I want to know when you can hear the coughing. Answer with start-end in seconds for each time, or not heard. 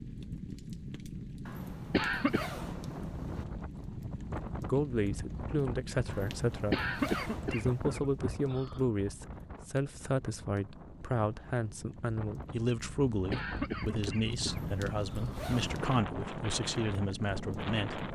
1.9-2.5, 6.7-8.8, 13.3-15.4.